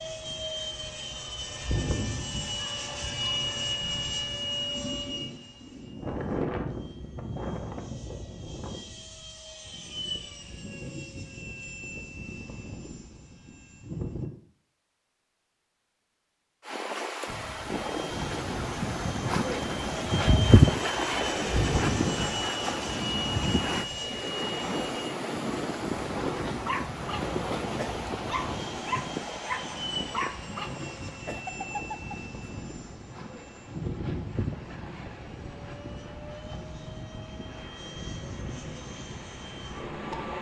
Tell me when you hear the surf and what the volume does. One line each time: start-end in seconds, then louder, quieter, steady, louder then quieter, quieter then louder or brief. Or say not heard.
16.6-40.3 quieter.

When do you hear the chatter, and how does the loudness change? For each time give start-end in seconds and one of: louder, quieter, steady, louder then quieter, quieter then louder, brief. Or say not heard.
not heard.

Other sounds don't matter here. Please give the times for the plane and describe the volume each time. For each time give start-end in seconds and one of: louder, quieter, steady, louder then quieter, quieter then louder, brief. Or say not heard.
0.0-14.3 quieter
17.2-40.3 quieter.